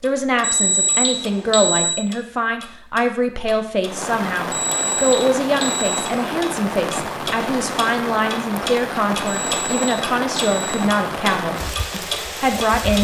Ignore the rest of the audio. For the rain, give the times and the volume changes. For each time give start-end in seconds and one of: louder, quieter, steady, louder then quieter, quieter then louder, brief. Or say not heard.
3.8-12.9 steady.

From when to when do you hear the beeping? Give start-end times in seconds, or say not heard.
0.4-1.9, 4.5-6.0, 9.2-10.8.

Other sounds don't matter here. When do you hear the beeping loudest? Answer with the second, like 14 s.
1 s.